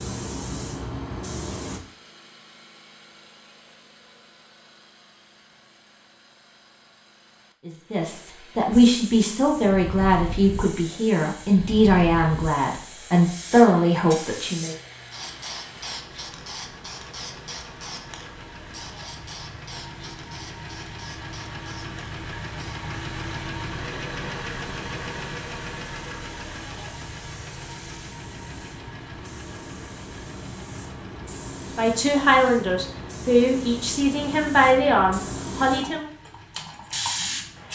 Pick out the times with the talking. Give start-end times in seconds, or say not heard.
7.7-14.8, 31.8-36.0.